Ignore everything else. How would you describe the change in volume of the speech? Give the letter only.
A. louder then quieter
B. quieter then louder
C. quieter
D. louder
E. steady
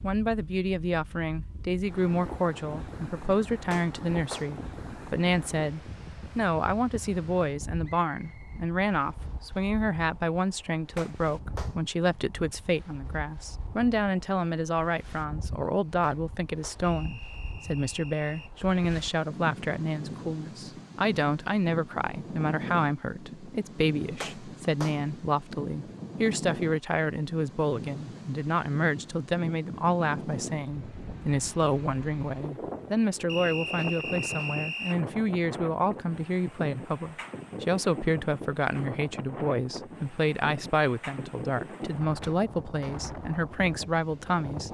E.